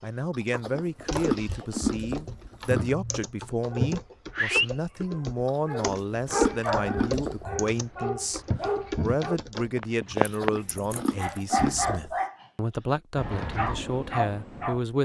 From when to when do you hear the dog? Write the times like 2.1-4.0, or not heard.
3.7-10.5, 11.2-12.4, 13.2-14.8.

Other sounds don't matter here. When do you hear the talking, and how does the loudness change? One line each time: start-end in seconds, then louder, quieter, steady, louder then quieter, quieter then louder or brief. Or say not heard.
0.0-14.9 steady.